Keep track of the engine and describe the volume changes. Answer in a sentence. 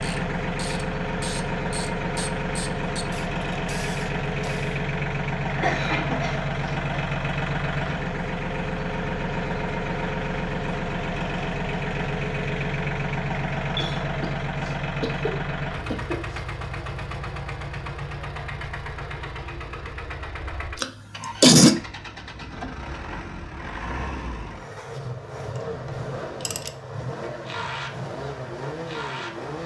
The loudness of the engine goes down.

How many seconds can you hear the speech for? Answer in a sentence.
The speech can't be heard in this clip.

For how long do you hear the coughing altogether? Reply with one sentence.
You can hear the coughing for 5 seconds altogether.